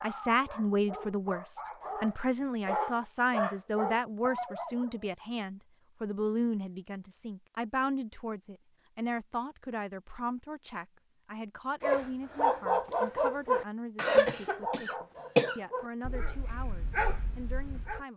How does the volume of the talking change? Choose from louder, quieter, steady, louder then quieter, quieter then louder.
quieter.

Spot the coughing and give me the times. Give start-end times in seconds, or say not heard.
13.9-15.6.